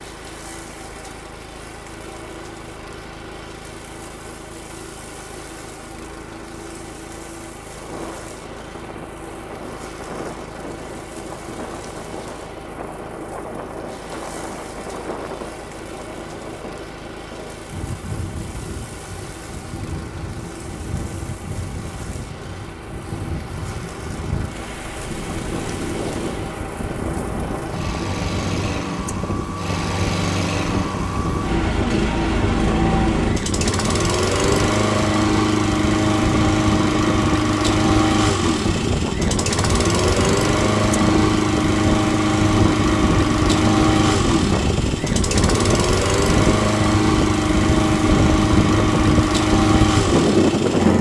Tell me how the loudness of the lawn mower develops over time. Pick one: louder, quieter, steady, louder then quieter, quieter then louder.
louder.